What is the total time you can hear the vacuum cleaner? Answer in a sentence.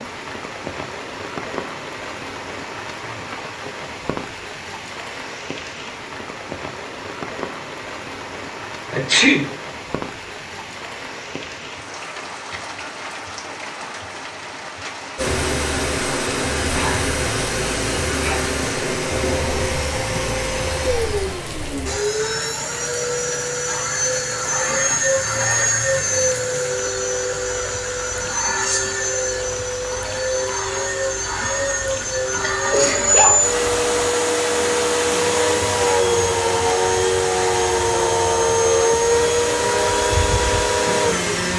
The vacuum cleaner can be heard for 26 seconds in total.